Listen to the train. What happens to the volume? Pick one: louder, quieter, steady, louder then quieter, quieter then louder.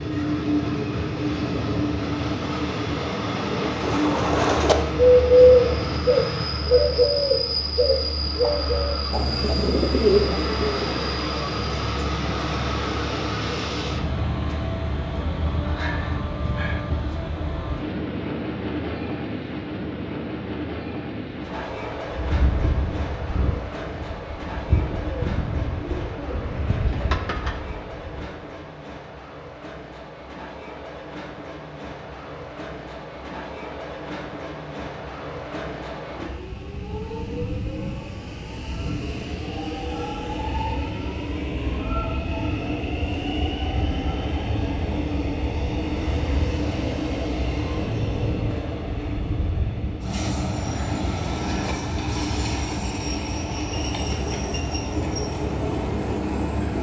quieter then louder.